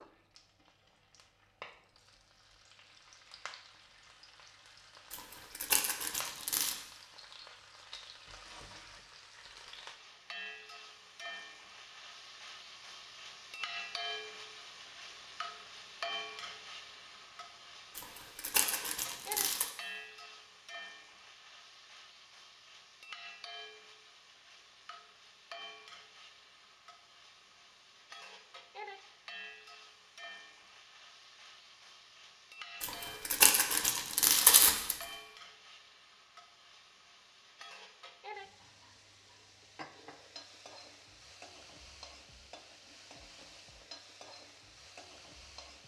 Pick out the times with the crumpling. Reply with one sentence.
The crumpling can be heard from 5.1 to 6.8 s, from 17.9 to 19.7 s and from 32.8 to 35.0 s.